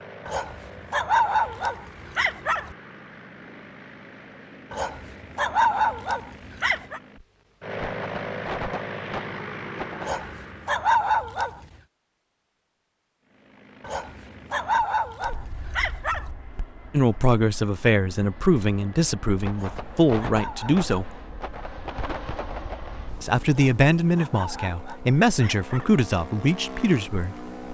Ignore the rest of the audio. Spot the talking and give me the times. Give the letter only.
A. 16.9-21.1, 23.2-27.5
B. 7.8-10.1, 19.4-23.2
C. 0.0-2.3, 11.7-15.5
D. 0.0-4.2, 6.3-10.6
A.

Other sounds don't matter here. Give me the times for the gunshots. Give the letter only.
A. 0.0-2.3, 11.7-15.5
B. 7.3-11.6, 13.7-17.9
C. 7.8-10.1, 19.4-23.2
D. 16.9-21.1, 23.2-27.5
C.